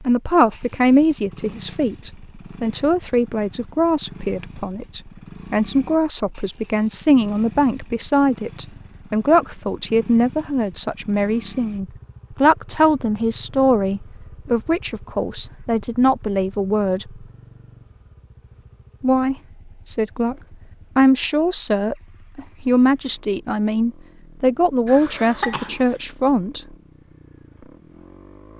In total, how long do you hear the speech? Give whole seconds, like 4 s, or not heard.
24 s.